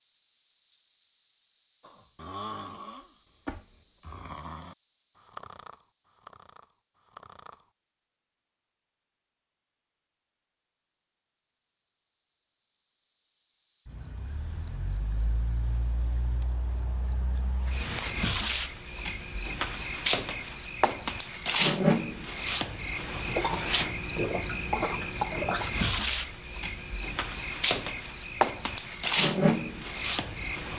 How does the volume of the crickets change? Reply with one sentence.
The loudness of the crickets goes down, then up.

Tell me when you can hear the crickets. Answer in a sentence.
The crickets can be heard from 0.0 to 30.7 s.